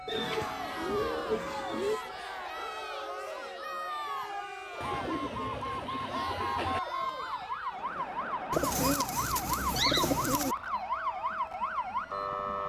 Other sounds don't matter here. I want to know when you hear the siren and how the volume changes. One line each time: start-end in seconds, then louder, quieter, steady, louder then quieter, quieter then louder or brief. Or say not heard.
0.0-12.6 louder.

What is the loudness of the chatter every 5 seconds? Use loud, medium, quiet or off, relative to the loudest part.
loud, loud, medium.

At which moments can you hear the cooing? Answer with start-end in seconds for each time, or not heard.
0.1-2.0, 4.8-6.8, 8.5-10.6.